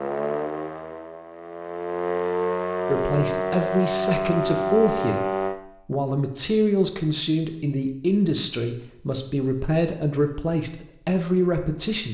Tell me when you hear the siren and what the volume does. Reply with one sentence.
You can hear the siren from 0.0 to 5.5 s, getting louder.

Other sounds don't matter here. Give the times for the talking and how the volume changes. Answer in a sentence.
You can hear the talking from 2.9 to 12.0 s, at a steady volume.